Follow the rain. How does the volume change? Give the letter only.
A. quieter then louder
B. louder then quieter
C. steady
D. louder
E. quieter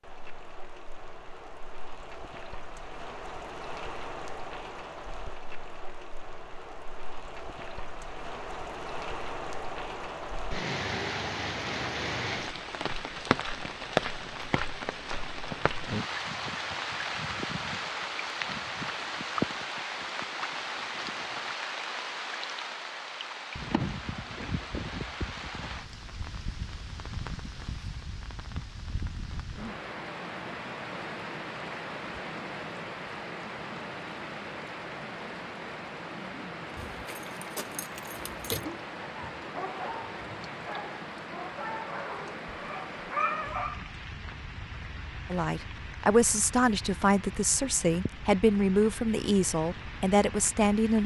B.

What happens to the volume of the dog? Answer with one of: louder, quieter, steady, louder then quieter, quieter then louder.
louder.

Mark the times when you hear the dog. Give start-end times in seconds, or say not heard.
38.5-43.9.